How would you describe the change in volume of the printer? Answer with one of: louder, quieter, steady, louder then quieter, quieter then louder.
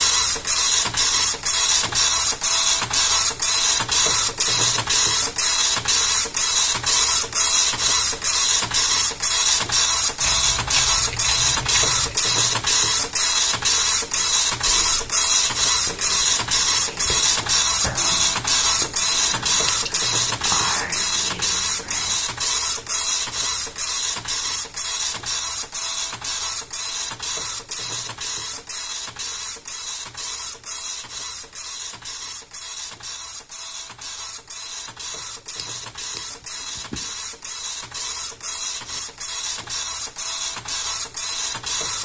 quieter.